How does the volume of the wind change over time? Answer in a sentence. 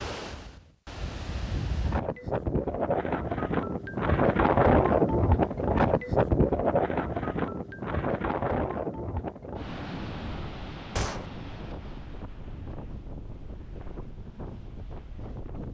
The volume of the wind goes up, then down.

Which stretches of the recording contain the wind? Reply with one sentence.
You can hear the wind from 0.0 to 15.6 s.